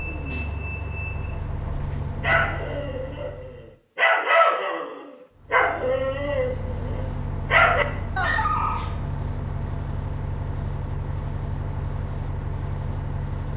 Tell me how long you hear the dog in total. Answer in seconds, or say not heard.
7 s.